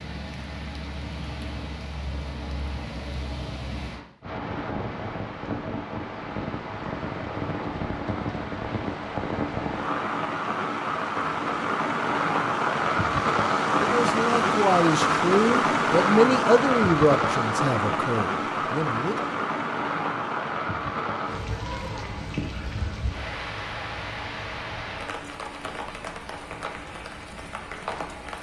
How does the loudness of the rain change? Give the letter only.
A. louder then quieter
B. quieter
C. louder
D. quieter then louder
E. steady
A.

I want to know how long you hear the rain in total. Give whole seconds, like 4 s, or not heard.
28 s.